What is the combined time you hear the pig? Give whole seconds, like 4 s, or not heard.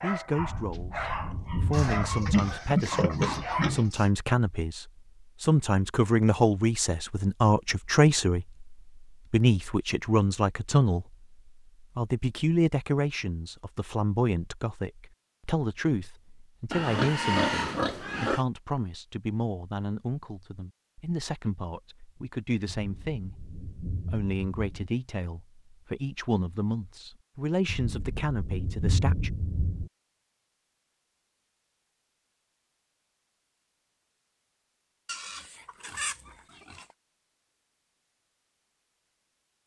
6 s.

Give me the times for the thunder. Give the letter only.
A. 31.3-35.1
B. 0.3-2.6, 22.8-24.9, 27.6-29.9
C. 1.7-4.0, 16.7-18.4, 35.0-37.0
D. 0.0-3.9
B.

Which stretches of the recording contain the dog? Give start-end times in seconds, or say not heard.
0.0-3.9.